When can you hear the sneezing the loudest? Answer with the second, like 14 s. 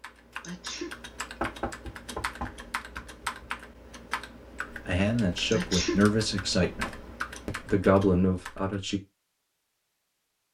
6 s.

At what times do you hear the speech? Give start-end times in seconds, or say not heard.
4.8-9.0.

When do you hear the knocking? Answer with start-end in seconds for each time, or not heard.
1.4-3.5, 6.6-7.2.